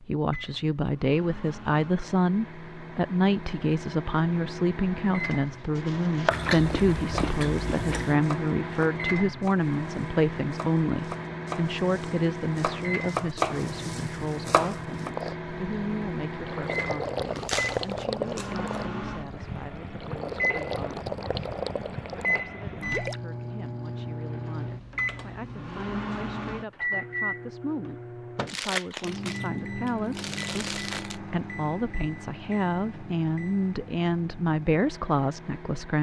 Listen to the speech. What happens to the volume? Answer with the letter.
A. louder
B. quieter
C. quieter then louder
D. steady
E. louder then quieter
C.